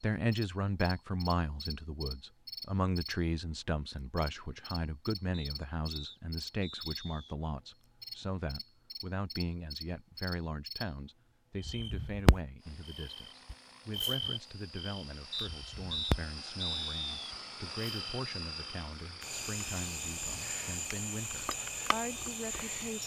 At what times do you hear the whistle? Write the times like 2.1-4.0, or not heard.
5.3-7.3, 15.3-17.1.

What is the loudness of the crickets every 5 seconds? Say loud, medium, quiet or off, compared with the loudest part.
medium, medium, loud, loud, loud.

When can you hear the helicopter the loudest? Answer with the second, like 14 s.
18 s.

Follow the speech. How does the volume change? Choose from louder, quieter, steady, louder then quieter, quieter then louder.
quieter.